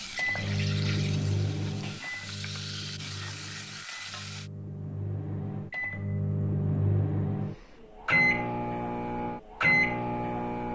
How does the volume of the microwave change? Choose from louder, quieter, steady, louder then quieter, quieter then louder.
quieter then louder.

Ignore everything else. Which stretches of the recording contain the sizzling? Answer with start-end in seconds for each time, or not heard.
0.0-4.5.